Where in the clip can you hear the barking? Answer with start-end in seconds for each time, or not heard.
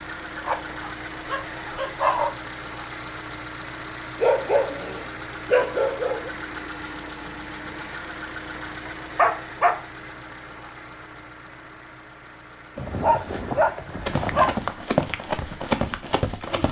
0.3-2.4, 4.2-6.3, 8.8-9.8, 12.8-14.6.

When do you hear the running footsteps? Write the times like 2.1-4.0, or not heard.
14.1-16.6.